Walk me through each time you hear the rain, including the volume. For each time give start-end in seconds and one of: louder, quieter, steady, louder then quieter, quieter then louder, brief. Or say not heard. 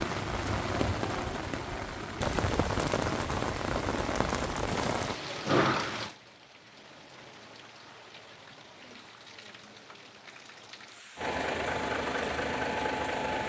0.0-13.4 quieter.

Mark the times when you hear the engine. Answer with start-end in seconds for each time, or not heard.
11.2-13.4.